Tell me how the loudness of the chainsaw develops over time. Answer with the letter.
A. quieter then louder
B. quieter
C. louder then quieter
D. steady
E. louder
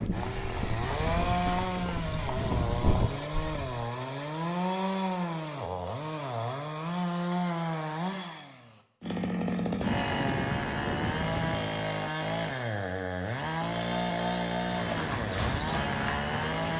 D.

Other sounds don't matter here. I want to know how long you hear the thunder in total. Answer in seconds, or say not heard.
2 s.